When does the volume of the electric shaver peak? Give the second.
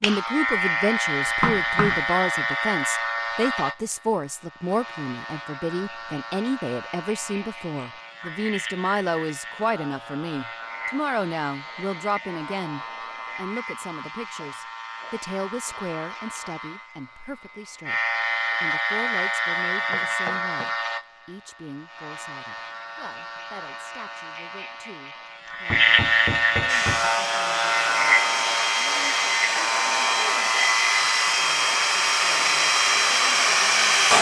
26 s.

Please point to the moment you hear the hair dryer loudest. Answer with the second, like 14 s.
34 s.